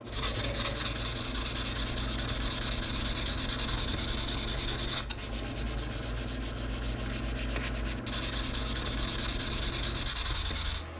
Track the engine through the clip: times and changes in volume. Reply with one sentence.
You can hear the engine from 0.0 to 10.9 s, at a steady volume.